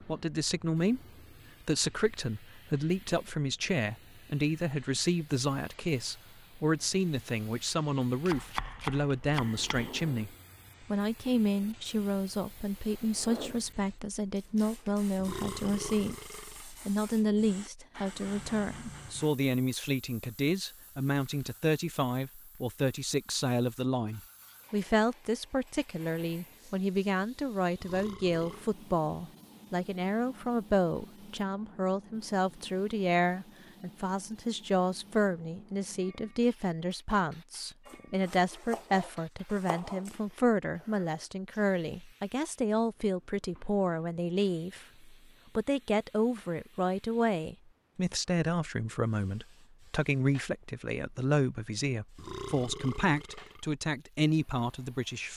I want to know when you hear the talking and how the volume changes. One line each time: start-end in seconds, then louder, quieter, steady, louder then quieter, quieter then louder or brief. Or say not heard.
0.0-1.0 brief
1.6-55.3 steady.